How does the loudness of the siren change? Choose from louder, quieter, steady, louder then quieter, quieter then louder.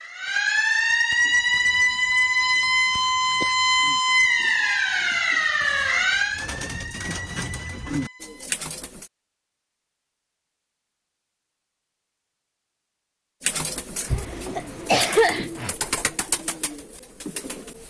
quieter.